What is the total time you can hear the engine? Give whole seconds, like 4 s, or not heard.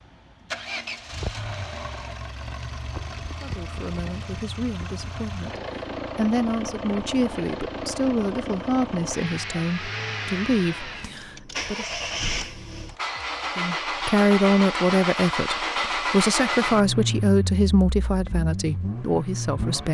20 s.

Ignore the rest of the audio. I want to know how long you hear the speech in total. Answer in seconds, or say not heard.
15 s.